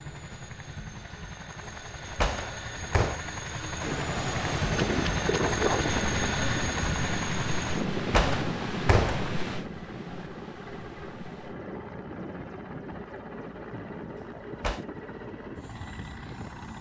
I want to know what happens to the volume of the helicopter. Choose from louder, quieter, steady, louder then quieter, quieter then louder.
louder then quieter.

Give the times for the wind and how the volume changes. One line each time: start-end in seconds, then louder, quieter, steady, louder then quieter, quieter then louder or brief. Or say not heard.
3.8-16.7 quieter.